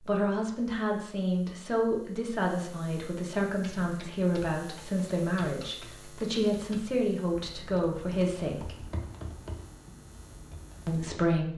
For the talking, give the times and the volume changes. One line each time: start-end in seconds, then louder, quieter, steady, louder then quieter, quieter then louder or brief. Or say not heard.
0.0-8.8 steady
10.8-11.5 brief.